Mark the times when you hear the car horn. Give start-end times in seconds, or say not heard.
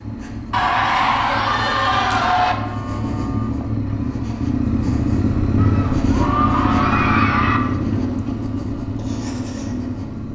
2.5-3.6, 6.2-7.1.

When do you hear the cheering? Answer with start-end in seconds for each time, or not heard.
0.5-2.5, 5.5-7.6.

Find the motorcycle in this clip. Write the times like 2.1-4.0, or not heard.
0.0-10.3.